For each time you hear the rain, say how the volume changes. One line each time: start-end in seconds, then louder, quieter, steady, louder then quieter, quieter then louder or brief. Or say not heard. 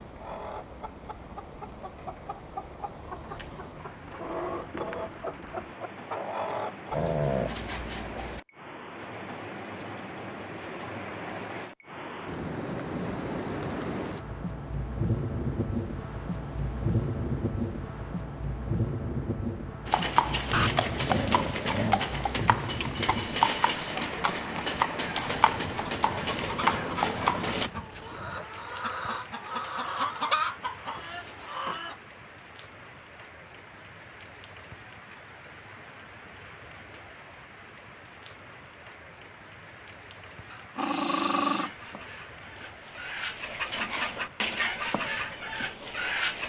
0.0-46.4 louder then quieter.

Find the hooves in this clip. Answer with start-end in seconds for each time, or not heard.
19.9-27.7.